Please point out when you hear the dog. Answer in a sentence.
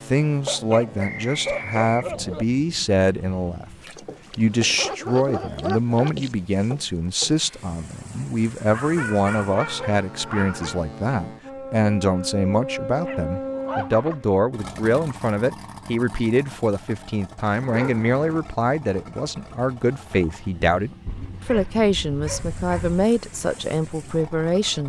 The dog can be heard from 0.5 to 2.5 s, from 4.3 to 6.3 s, from 8.7 to 10.8 s, from 12.9 to 14.2 s, from 17.6 to 18.4 s and from 21.1 to 23.1 s.